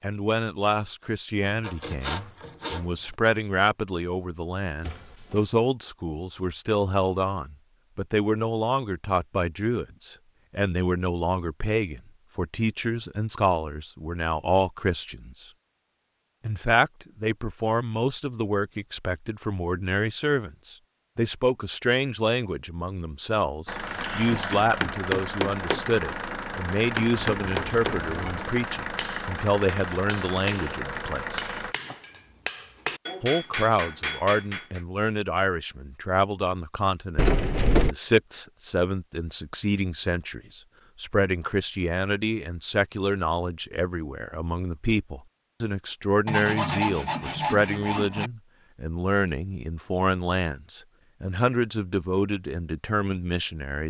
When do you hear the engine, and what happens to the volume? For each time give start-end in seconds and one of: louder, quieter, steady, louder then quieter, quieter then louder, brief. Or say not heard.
23.6-31.8 steady.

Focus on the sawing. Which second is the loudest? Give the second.
47 s.